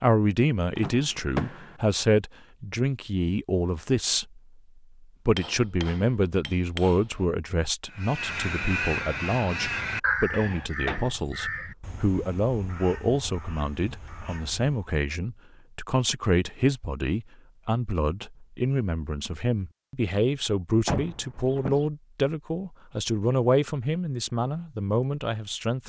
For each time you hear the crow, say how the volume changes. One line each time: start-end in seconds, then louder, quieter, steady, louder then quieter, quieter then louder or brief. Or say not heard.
7.9-14.9 quieter.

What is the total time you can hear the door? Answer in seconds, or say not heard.
3 s.